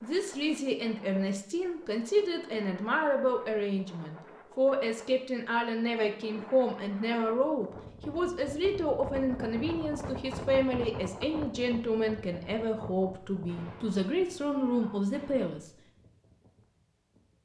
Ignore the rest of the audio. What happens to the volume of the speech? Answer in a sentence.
The loudness of the speech stays about the same.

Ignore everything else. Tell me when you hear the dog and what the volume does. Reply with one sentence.
You can't hear the dog here.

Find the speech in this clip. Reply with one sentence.
The speech can be heard from 0.0 to 15.7 s.